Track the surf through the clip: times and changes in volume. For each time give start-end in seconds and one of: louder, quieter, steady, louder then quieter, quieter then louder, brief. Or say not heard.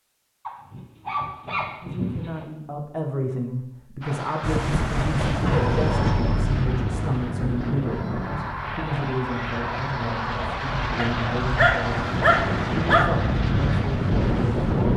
4.4-14.9 quieter then louder.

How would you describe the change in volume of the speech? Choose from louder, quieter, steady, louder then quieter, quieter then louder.
steady.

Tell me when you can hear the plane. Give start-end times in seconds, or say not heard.
4.0-14.9.